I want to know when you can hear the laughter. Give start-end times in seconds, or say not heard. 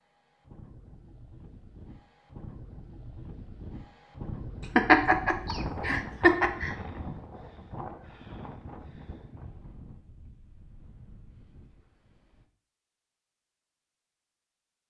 4.8-6.7.